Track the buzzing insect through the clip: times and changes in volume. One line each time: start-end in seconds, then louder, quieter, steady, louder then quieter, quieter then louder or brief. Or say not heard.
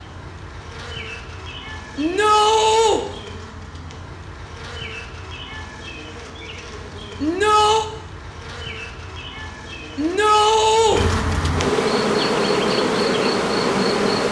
0.0-14.2 louder.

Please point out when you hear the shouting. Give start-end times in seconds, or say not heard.
1.9-3.0, 7.2-7.8, 9.9-11.0.